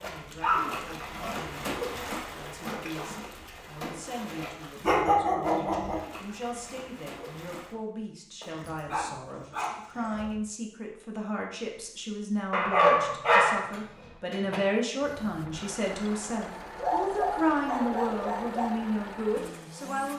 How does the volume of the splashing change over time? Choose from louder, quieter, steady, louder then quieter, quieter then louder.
quieter.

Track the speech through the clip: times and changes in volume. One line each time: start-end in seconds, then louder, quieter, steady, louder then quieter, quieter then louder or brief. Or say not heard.
0.0-20.1 louder.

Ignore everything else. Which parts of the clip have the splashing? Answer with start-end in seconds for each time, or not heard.
0.0-7.8.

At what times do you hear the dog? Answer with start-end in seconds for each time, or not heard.
0.4-1.3, 4.8-6.0, 8.4-10.3, 12.5-14.6, 16.8-18.8.